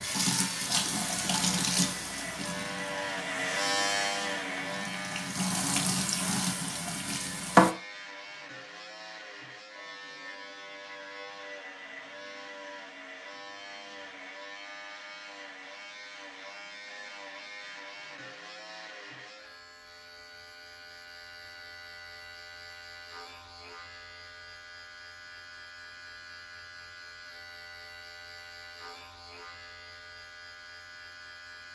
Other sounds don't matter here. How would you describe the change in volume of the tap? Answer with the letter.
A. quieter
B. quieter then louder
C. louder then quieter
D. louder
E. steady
B.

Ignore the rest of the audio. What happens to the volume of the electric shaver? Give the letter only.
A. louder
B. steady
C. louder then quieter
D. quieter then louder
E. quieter
E.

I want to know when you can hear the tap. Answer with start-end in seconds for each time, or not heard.
0.0-7.8.